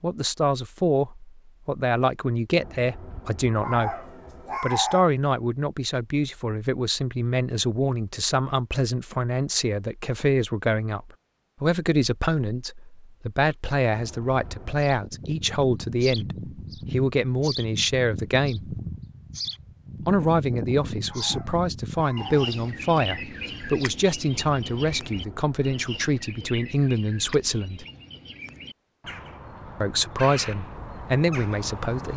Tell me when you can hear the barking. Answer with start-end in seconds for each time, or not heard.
3.6-5.0, 21.1-22.6.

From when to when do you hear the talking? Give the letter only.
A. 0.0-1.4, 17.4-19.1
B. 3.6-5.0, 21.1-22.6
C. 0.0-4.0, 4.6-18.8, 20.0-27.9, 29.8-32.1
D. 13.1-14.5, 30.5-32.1
C.